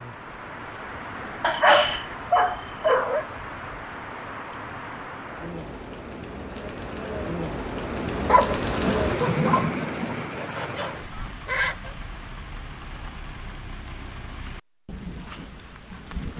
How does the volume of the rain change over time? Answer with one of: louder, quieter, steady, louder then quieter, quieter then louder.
louder then quieter.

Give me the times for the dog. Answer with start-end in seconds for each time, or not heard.
1.4-3.2, 8.2-9.7.